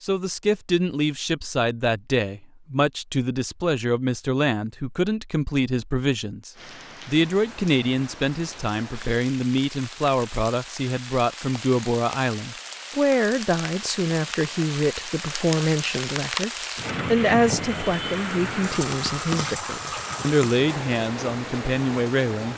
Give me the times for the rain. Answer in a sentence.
The rain can be heard from 6.5 to 22.5 s.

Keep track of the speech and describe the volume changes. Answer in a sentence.
The volume of the speech stays about the same.